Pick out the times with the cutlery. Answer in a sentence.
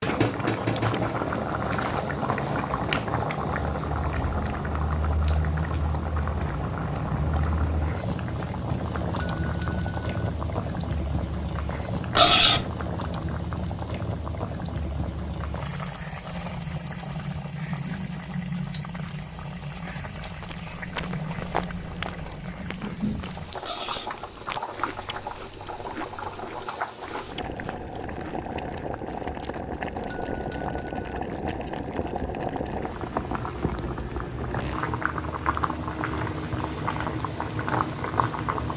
The cutlery can be heard from 12.2 to 12.7 s and from 23.6 to 24.1 s.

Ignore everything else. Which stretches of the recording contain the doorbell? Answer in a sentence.
You can hear the doorbell from 9.2 to 10.3 s and from 30.1 to 31.2 s.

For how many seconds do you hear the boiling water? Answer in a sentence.
The boiling water can be heard for 39 seconds in total.